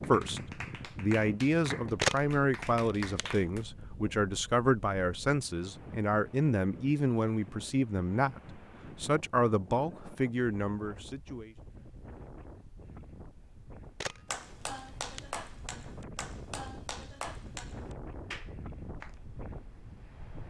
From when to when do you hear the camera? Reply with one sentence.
The camera can be heard from 2.0 to 3.2 s and from 14.0 to 15.2 s.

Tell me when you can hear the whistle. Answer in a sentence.
The whistle can't be heard in this clip.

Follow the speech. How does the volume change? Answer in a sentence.
The volume of the speech stays about the same.